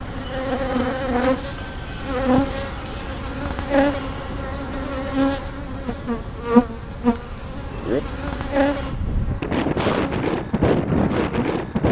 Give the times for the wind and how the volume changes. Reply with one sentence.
The wind can be heard from 0.0 to 11.8 s, getting louder.